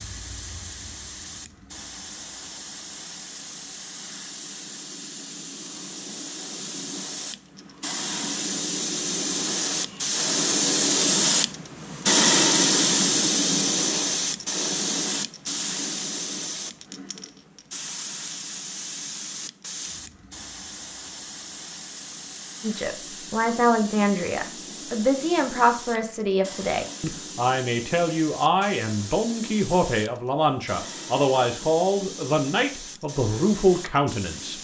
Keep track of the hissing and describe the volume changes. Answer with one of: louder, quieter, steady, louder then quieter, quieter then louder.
louder then quieter.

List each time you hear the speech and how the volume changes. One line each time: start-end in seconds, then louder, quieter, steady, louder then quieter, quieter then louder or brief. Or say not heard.
22.6-34.5 steady.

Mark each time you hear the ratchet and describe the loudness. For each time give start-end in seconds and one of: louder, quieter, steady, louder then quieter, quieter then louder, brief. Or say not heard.
not heard.